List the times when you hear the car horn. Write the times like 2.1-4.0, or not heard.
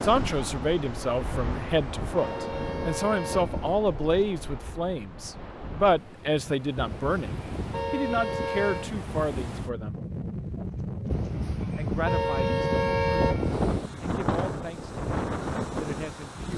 1.2-3.8, 6.8-8.9, 11.1-13.8.